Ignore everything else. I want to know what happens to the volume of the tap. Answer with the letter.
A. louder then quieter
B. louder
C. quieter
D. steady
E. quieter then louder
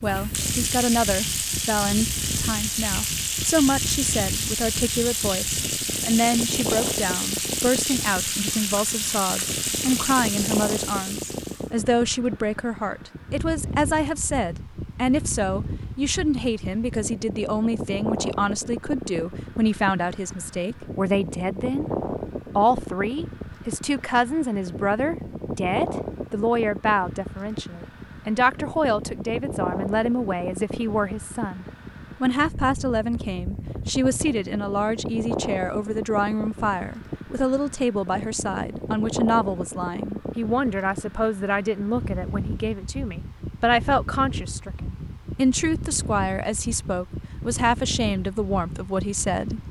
D.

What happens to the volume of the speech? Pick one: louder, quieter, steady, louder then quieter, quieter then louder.
steady.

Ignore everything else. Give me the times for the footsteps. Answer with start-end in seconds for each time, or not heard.
not heard.